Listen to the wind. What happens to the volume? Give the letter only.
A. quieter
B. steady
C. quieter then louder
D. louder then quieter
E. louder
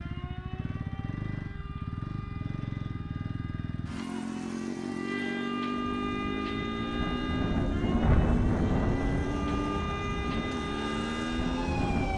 D.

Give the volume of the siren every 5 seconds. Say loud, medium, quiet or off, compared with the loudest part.
quiet, loud, loud.